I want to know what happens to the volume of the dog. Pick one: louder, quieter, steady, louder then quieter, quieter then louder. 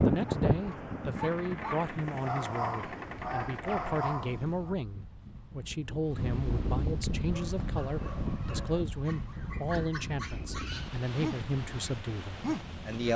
quieter then louder.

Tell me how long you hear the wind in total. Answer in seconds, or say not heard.
13 s.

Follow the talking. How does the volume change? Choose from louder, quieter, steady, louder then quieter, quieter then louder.
steady.